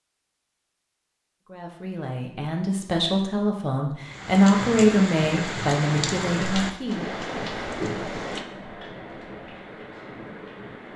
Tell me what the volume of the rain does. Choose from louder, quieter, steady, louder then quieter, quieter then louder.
quieter.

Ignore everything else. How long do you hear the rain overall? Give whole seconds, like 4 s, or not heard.
7 s.